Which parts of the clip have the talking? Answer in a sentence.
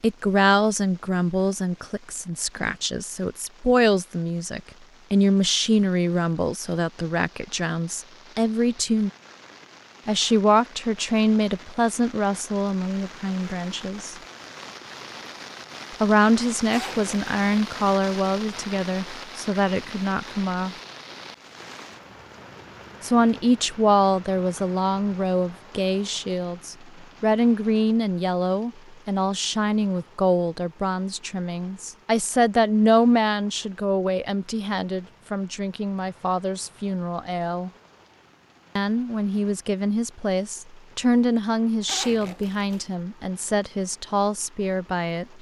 The talking can be heard from 0.0 to 9.1 s, from 10.1 to 14.2 s, from 16.0 to 20.8 s, from 23.0 to 37.7 s and from 38.8 to 45.2 s.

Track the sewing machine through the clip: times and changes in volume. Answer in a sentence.
The sewing machine can't be heard in this clip.